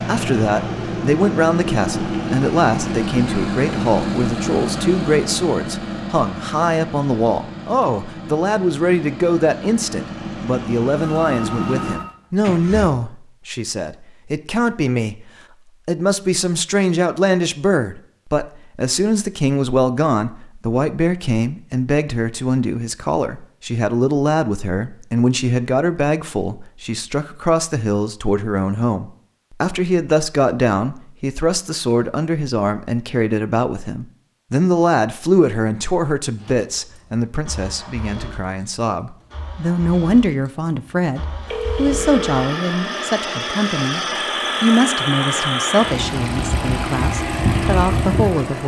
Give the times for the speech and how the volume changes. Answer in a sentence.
The speech can be heard from 0.0 to 48.6 s, at a steady volume.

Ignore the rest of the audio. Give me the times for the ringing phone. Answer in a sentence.
The ringing phone can be heard from 11.2 to 12.2 s and from 41.5 to 42.5 s.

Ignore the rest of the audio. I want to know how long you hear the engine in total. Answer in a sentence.
You can hear the engine for 25 seconds altogether.